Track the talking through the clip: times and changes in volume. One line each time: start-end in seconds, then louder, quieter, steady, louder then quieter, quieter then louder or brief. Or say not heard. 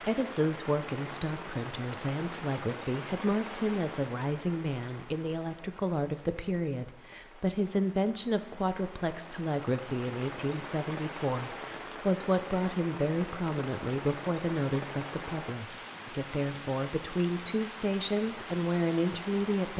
0.1-19.7 steady.